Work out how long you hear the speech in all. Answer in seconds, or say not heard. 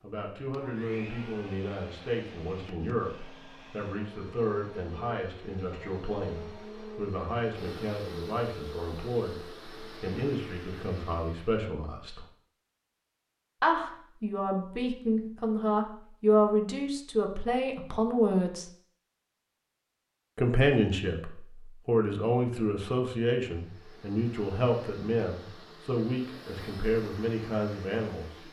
25 s.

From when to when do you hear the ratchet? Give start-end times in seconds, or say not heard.
not heard.